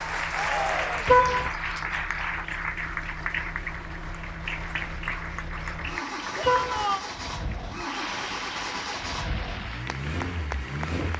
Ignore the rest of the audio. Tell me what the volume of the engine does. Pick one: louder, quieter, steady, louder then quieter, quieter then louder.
louder.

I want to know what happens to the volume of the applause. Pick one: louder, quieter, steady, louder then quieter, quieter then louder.
quieter.